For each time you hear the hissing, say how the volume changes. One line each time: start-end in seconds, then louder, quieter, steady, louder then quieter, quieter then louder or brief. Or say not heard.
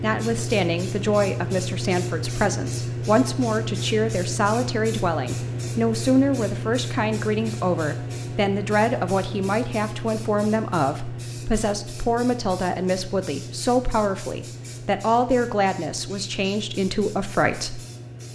0.0-18.2 quieter.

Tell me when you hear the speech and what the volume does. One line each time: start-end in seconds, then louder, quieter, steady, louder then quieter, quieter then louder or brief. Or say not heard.
0.0-17.8 steady.